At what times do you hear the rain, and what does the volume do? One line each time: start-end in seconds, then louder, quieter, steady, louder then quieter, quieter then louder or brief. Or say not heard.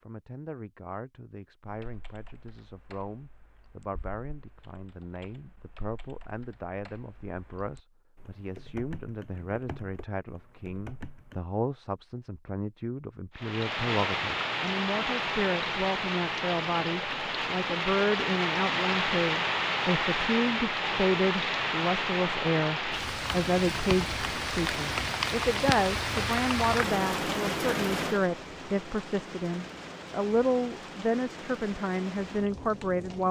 13.3-33.2 quieter.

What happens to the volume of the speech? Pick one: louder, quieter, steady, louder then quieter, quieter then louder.
louder.